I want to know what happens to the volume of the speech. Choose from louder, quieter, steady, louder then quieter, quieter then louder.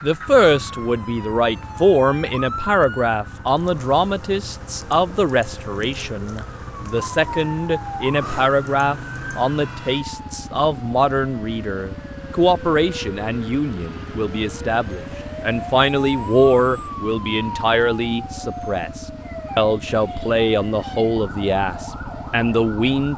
steady.